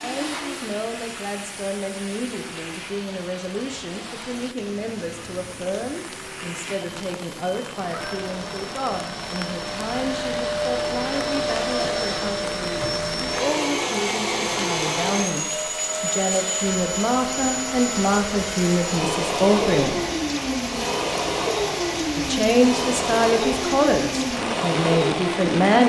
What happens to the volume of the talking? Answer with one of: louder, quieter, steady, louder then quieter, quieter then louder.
louder.